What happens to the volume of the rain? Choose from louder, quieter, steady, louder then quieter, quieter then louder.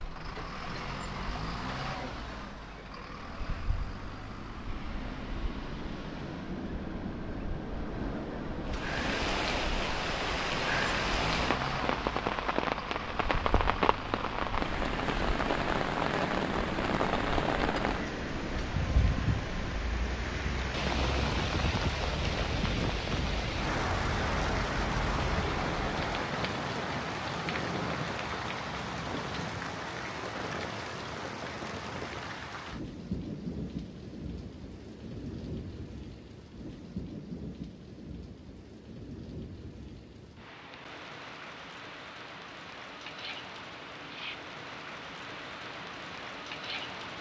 quieter.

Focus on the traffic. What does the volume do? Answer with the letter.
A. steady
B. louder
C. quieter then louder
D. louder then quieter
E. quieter
A.